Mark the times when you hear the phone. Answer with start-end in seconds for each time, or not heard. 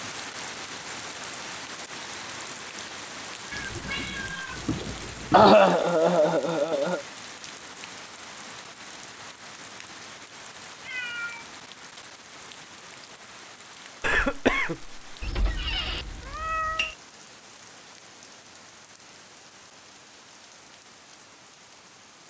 not heard.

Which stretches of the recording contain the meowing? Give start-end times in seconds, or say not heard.
3.5-5.5, 10.8-11.5, 15.2-16.9.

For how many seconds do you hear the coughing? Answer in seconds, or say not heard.
3 s.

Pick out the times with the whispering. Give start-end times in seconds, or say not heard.
not heard.